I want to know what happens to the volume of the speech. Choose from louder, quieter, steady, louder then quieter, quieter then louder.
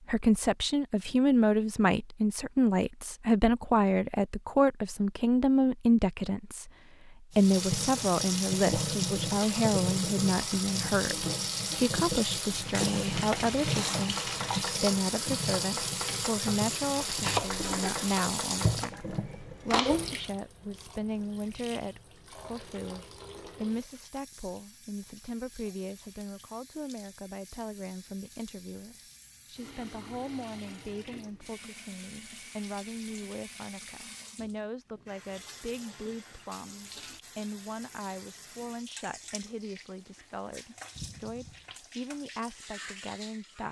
quieter.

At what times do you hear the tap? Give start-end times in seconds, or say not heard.
7.3-43.6.